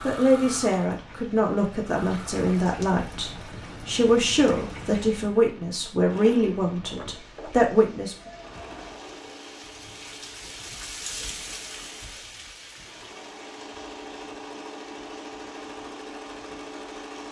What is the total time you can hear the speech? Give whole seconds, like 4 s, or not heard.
8 s.